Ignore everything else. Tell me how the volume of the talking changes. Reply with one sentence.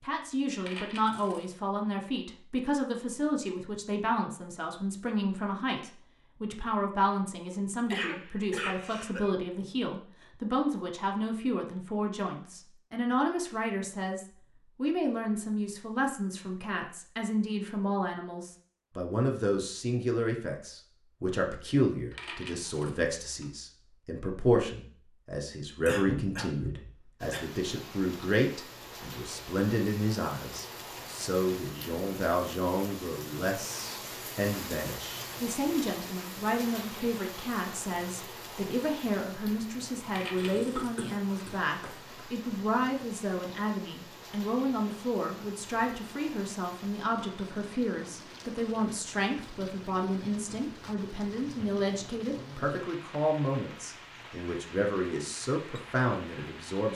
The loudness of the talking stays about the same.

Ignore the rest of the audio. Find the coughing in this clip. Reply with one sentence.
You can hear the coughing from 7.9 to 9.3 s, from 25.9 to 27.8 s and from 40.4 to 42.2 s.